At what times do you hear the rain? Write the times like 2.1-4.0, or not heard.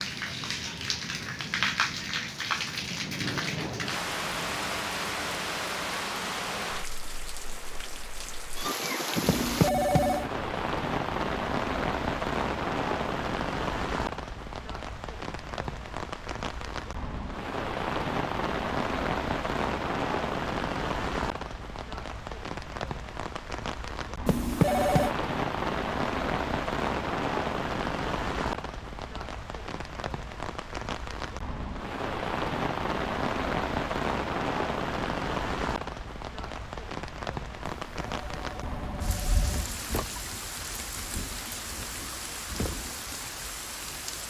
0.0-44.2.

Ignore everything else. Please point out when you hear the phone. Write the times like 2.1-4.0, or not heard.
9.2-10.3, 24.2-25.1, 37.6-39.6.